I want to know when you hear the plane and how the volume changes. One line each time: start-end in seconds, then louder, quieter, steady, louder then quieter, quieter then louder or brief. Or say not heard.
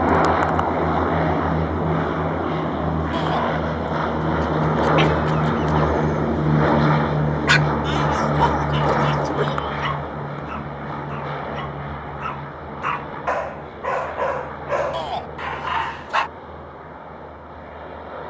0.0-18.2 quieter.